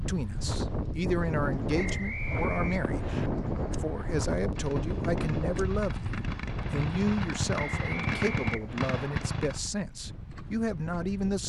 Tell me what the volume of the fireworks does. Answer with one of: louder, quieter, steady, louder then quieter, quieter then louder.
louder.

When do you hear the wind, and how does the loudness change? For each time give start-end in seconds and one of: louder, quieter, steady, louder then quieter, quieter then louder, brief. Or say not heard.
0.0-11.4 quieter.